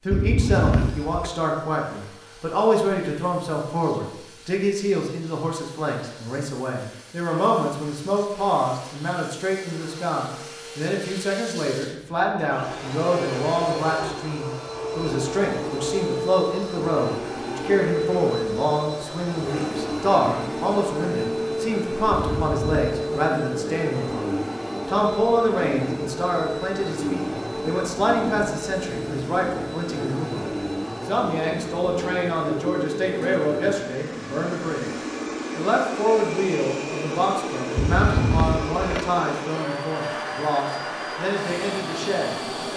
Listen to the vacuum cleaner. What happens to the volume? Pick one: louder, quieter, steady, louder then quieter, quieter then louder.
louder.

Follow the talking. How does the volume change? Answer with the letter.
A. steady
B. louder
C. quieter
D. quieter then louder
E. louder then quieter
A.